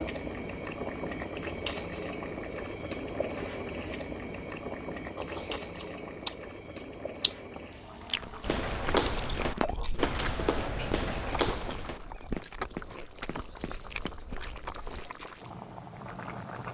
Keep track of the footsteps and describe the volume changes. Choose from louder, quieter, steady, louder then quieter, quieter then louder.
quieter.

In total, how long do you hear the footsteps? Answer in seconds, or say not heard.
6 s.